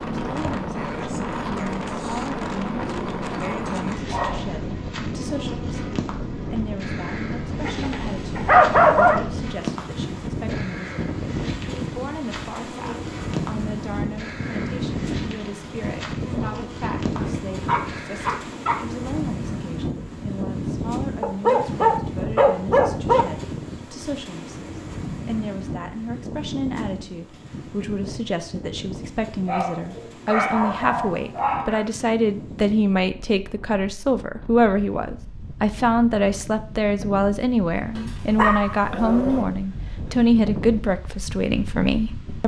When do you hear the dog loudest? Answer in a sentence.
The volume of the dog peaks at 9 seconds.